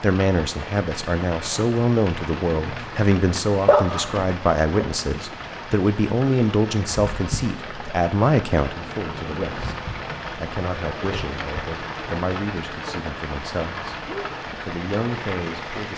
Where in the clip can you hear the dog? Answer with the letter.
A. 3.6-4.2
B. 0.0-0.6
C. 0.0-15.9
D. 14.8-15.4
A.